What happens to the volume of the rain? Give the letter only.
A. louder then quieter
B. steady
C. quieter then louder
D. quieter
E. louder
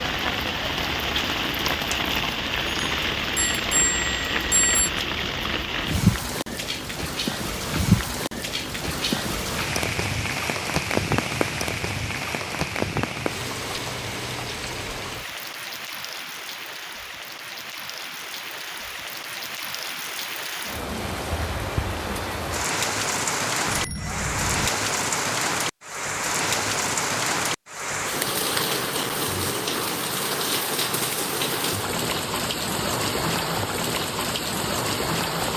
C.